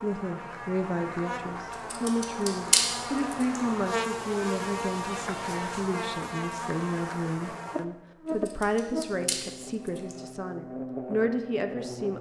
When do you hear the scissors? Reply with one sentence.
The scissors can be heard from 1.9 to 3.6 s and from 8.4 to 10.2 s.